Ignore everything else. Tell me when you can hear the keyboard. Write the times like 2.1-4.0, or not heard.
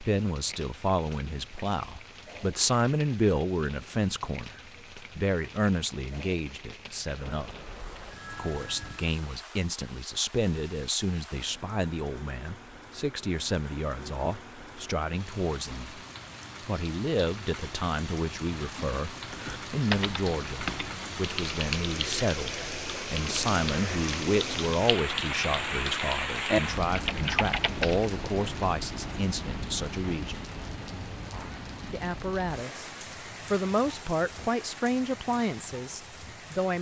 19.3-28.1.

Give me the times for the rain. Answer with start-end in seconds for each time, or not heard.
0.0-36.7.